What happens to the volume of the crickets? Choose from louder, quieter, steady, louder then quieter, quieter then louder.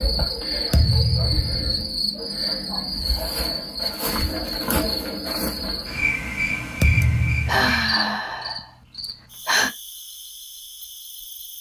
quieter.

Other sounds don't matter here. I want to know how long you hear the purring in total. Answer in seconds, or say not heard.
not heard.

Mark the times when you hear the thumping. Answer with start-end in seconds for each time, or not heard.
0.7-1.9, 6.8-8.0.